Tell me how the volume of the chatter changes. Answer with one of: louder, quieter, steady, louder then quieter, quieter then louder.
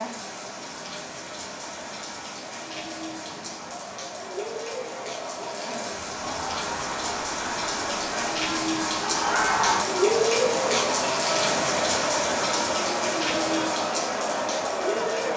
louder.